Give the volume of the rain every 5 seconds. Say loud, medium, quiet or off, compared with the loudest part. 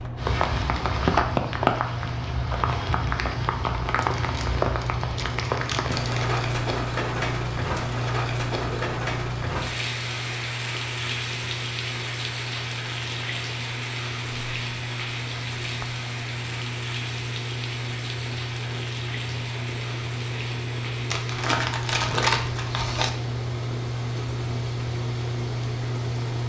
loud, loud, medium, medium, quiet, quiet.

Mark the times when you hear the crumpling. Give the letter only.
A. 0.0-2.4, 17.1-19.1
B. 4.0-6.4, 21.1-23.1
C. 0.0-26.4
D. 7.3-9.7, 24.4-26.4
B.